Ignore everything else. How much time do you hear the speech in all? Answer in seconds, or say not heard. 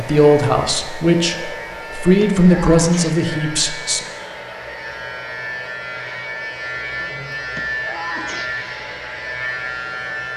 4 s.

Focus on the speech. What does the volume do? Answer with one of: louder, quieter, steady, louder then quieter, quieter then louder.
louder then quieter.